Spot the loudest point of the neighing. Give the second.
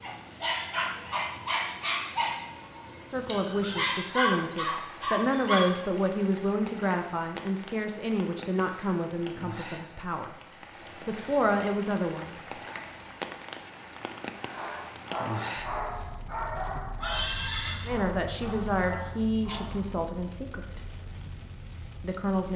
17 s.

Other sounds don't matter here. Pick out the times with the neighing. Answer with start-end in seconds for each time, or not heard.
3.6-4.2, 17.0-17.9.